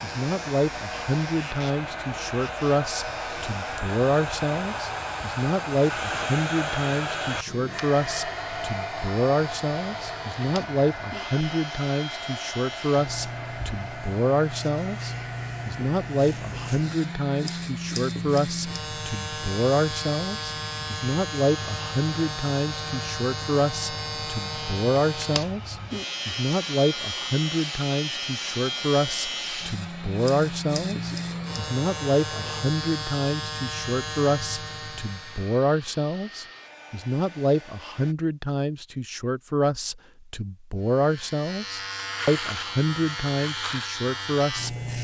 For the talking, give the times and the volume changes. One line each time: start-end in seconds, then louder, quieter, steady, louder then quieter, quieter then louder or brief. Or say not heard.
0.0-44.8 steady.